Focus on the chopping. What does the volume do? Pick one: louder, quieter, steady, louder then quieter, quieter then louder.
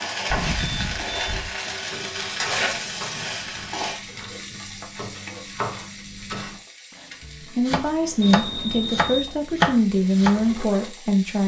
louder.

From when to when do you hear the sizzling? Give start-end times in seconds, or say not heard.
0.0-11.4.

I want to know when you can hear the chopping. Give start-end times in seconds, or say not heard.
1.7-10.6.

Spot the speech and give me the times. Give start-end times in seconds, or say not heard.
7.4-11.4.